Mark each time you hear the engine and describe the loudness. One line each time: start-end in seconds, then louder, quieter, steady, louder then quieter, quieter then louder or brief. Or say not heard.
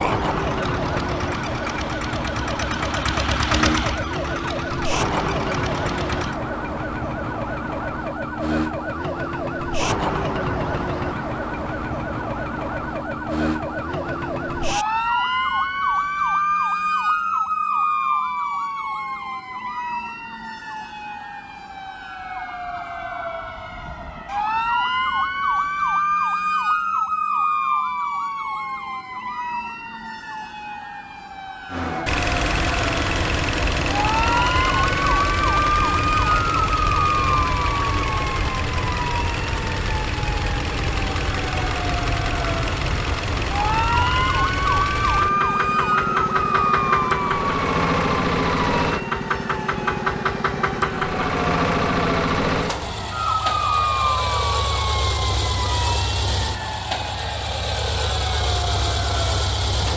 0.2-6.4 louder then quieter
31.7-59.9 steady.